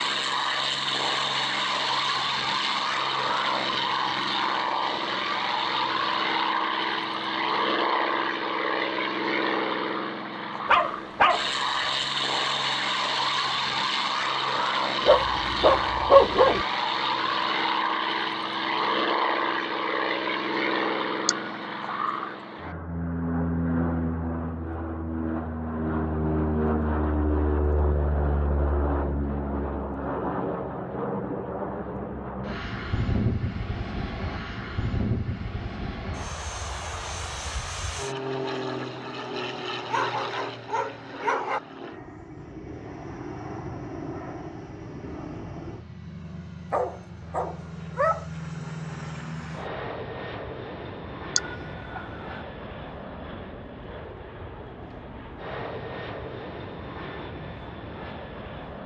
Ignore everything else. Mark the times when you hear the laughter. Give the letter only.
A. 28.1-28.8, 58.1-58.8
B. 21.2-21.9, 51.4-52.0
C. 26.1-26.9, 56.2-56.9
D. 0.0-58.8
B.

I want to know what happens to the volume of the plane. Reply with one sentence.
The loudness of the plane goes down.